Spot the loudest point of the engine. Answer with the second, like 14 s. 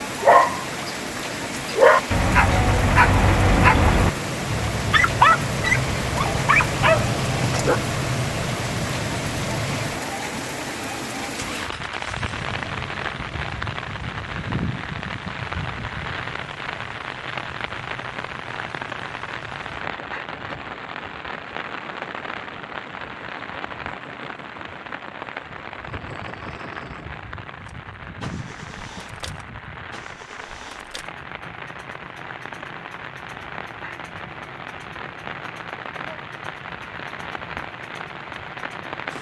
7 s.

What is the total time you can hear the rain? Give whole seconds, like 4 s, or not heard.
39 s.